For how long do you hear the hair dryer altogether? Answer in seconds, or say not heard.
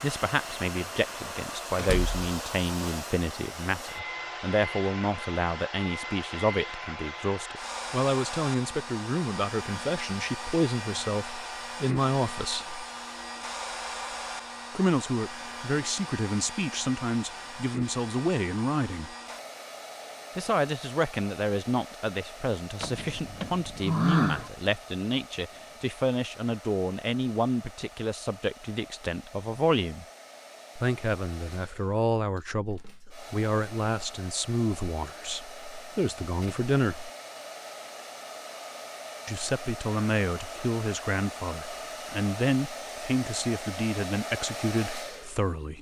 46 s.